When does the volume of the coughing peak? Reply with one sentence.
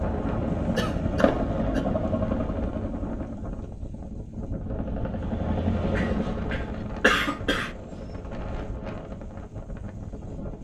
The loudest moment of the coughing is at 7 seconds.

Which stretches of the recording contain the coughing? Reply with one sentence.
You can hear the coughing from 0.8 to 1.9 s and from 6.0 to 7.7 s.